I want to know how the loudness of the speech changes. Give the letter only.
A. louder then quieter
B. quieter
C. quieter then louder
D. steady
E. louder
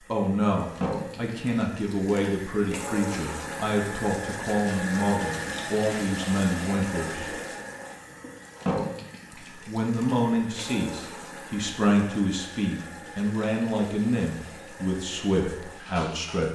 D.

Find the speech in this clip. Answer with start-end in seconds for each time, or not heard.
0.1-7.3, 9.3-16.4.